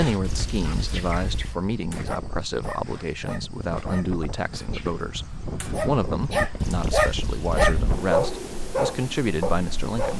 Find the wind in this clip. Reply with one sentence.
The wind can be heard from 0.1 to 10.1 s.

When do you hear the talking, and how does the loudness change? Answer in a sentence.
The talking can be heard from 0.0 to 10.1 s, at a steady volume.